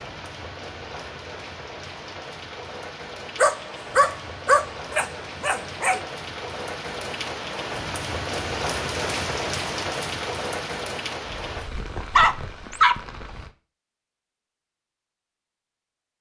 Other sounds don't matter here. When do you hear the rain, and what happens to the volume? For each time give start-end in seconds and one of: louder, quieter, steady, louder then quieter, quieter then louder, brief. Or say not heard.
0.0-13.6 louder then quieter.